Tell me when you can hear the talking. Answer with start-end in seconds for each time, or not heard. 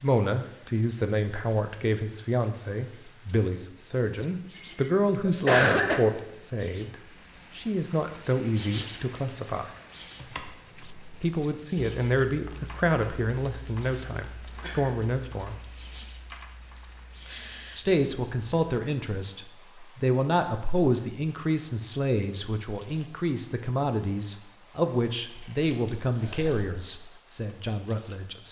0.0-7.0, 7.5-9.7, 11.2-15.6, 17.8-28.4.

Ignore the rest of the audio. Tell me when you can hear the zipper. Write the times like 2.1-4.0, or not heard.
not heard.